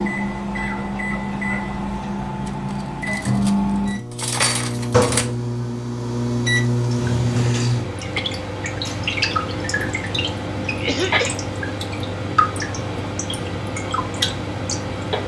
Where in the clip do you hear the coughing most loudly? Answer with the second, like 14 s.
11 s.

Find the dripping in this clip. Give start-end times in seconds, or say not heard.
7.0-15.2.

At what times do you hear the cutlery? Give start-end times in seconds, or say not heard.
2.5-5.3.